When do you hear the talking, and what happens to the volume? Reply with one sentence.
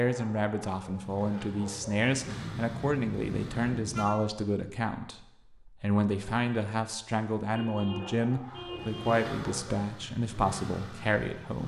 The talking can be heard from 0.0 to 11.6 s, at a steady volume.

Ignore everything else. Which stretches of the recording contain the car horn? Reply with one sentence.
The car horn can be heard from 2.2 to 4.0 s and from 7.5 to 9.3 s.